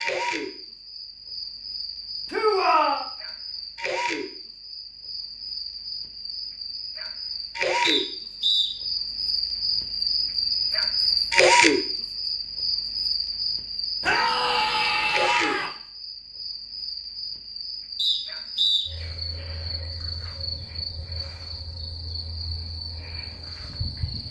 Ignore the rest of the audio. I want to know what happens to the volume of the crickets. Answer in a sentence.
The loudness of the crickets goes up, then down.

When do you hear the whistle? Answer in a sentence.
You can hear the whistle from 7.8 to 8.7 s and from 17.9 to 18.9 s.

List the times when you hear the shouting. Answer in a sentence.
You can hear the shouting from 2.3 to 3.0 s and from 14.0 to 15.7 s.